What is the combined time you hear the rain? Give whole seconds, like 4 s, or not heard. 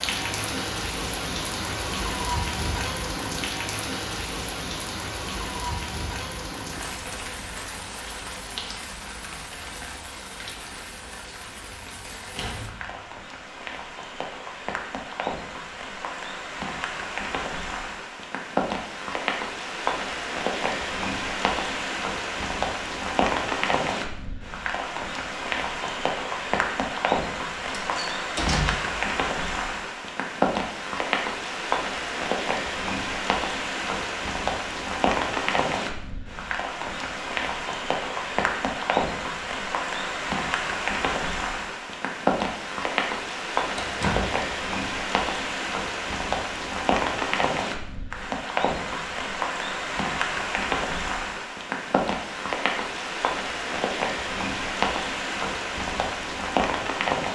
57 s.